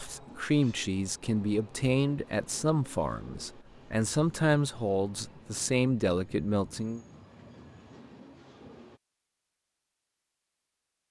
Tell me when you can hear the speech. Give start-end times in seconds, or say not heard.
0.0-7.0.